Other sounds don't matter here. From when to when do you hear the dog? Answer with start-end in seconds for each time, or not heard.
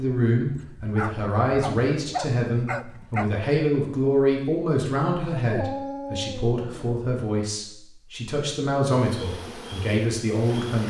0.5-3.3, 5.5-7.0.